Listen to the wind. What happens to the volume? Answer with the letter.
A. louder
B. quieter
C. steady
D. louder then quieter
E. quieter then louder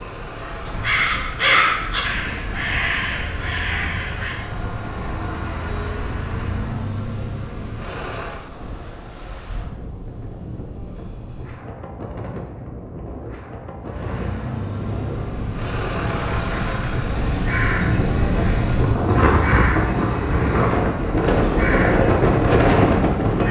A.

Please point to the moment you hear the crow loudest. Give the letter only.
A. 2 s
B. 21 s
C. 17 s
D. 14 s
A.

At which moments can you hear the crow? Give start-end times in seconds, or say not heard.
0.0-4.3, 16.5-23.4.